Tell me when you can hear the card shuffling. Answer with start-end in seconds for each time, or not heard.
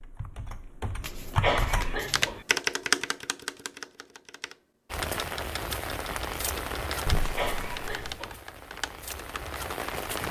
1.0-2.4, 7.0-8.2.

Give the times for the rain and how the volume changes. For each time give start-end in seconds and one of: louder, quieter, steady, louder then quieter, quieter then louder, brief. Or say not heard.
4.9-10.2 quieter then louder.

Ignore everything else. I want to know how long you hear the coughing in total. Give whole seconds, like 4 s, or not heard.
2 s.